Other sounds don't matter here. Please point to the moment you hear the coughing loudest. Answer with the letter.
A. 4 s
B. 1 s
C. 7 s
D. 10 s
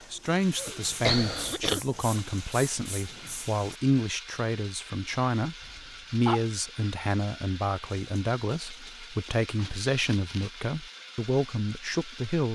B.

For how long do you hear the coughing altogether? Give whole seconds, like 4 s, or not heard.
3 s.